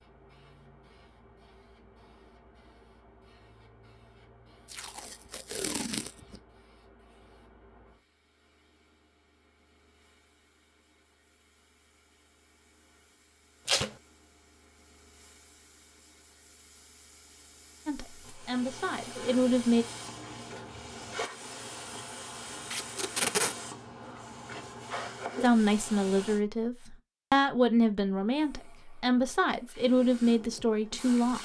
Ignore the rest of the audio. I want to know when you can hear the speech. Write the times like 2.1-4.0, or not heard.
17.9-19.9, 25.4-31.3.